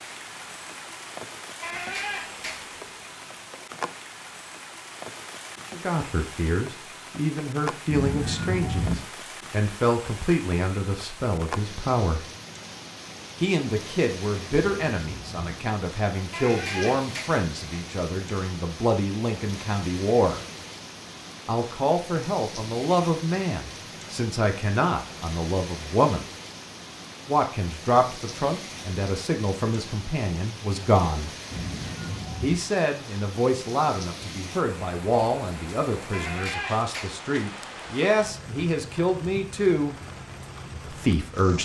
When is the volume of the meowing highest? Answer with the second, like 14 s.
9 s.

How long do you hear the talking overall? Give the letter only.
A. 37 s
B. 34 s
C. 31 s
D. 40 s
C.